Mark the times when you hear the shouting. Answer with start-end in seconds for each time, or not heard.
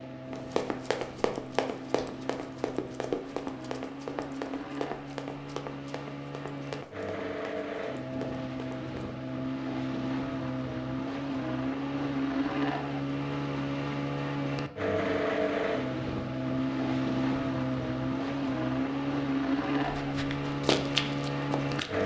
not heard.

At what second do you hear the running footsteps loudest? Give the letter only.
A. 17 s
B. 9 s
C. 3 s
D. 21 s
D.